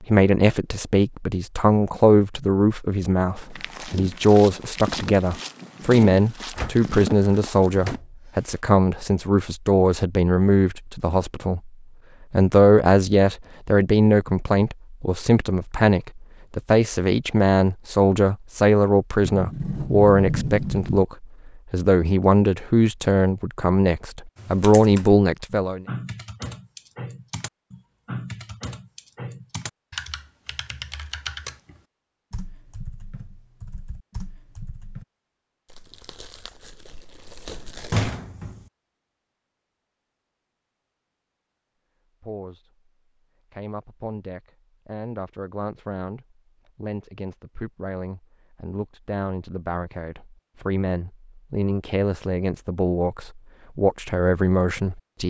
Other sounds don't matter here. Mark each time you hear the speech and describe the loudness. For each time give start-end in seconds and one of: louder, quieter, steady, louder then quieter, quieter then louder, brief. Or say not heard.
0.0-11.7 steady
12.3-25.9 steady
42.2-42.7 brief
43.5-55.2 louder.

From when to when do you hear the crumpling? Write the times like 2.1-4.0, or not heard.
35.6-38.1.